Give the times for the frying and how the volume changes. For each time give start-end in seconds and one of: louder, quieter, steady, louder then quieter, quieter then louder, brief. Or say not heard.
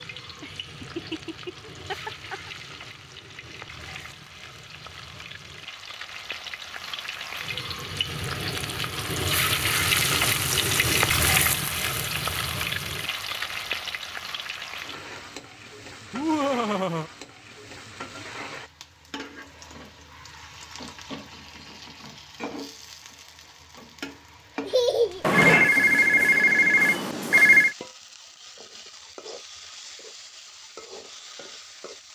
0.0-32.0 louder then quieter.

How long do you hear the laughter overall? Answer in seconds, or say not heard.
4 s.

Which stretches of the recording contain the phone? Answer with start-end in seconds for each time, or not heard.
25.2-27.8.